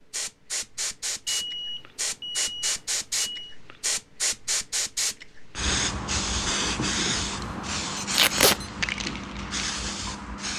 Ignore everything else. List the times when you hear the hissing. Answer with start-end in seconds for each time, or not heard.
0.0-10.5.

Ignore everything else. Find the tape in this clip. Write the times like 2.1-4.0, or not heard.
8.1-8.6.